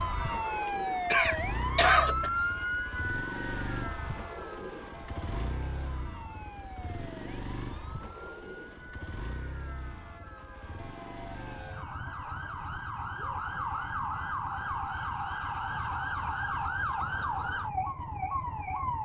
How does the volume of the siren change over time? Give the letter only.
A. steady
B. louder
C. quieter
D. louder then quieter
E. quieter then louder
E.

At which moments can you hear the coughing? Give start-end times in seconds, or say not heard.
1.1-2.3.